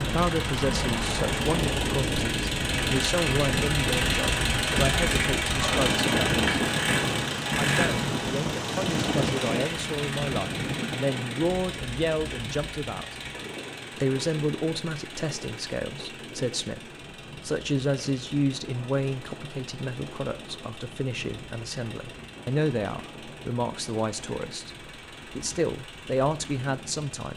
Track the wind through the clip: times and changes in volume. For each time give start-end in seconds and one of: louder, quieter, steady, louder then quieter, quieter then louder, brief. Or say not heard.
0.0-27.1 quieter.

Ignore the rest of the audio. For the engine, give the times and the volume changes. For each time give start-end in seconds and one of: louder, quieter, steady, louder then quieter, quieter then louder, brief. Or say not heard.
0.0-27.3 quieter.